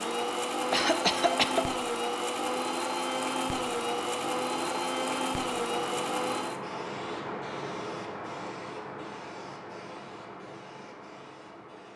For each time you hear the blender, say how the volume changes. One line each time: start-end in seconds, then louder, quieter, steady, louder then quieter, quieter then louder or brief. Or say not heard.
0.0-6.7 steady.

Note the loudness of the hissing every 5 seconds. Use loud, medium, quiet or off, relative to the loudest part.
medium, loud, medium.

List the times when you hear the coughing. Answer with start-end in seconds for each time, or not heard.
0.7-1.8.